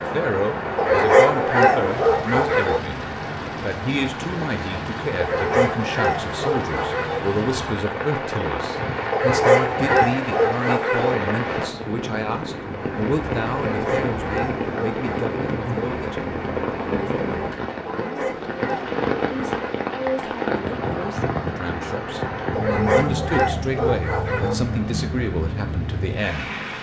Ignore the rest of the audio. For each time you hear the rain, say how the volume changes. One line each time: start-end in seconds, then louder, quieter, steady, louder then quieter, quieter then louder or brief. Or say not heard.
0.0-26.7 steady.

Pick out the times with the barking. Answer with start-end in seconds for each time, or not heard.
0.8-2.8, 5.2-7.2, 9.1-11.2, 13.5-15.2, 17.9-19.9, 22.6-24.6.